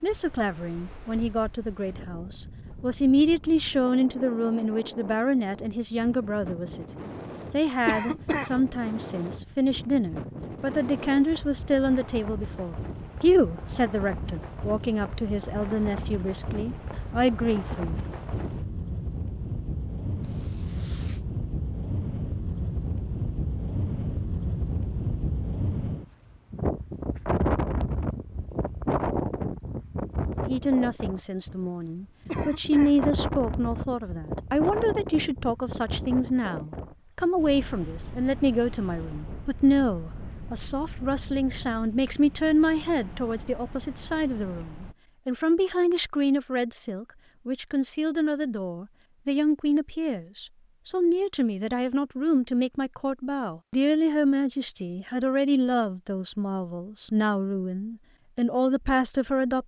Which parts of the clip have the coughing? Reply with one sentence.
You can hear the coughing from 7.8 to 8.6 s and from 32.2 to 33.0 s.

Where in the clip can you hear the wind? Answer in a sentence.
You can hear the wind from 0.0 to 45.0 s.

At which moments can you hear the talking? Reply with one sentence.
You can hear the talking from 0.0 to 18.0 s and from 30.4 to 59.6 s.